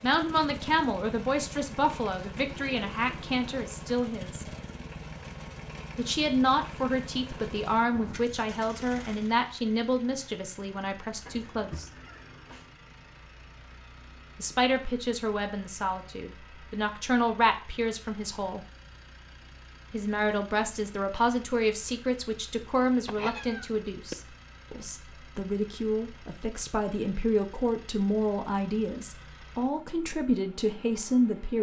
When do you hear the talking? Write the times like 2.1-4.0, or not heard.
0.0-4.5, 6.0-11.9, 14.3-18.6, 19.9-31.5.